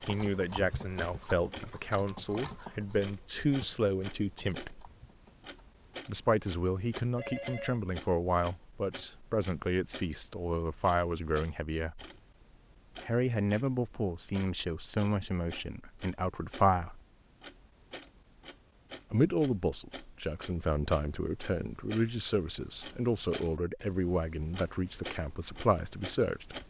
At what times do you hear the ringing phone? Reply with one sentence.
The ringing phone can be heard from 7.2 to 7.8 s.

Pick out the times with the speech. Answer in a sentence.
The speech can be heard from 0.1 to 4.9 s, from 6.0 to 12.1 s, from 13.1 to 17.0 s and from 19.1 to 26.6 s.